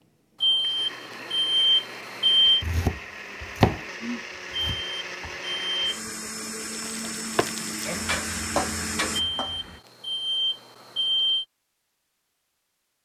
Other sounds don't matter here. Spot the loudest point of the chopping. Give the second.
4 s.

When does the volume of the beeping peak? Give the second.
2 s.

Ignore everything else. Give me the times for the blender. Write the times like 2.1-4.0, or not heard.
0.0-9.2.